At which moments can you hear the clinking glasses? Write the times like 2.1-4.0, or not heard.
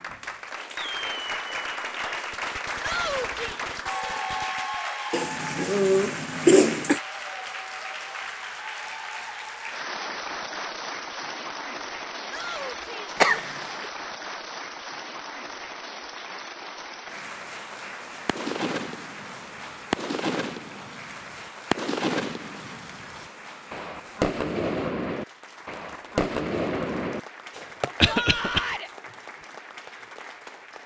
not heard.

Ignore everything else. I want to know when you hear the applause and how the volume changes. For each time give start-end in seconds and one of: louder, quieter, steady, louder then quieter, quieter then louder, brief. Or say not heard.
0.0-30.8 quieter.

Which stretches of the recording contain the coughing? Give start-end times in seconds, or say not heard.
5.1-7.0, 13.2-13.8, 28.0-28.6.